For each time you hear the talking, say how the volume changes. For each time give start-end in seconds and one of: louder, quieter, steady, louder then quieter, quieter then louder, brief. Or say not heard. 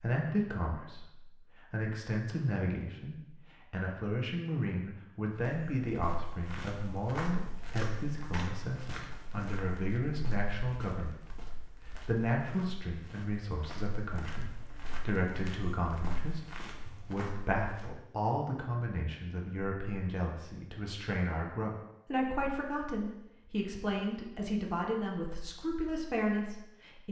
0.0-27.0 steady.